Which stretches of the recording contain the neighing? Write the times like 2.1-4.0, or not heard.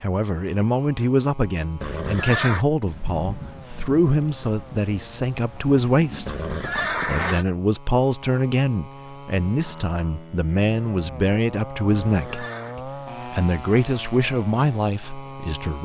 1.8-2.6, 6.2-7.5, 12.1-12.8.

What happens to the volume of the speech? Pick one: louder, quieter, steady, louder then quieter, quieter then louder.
steady.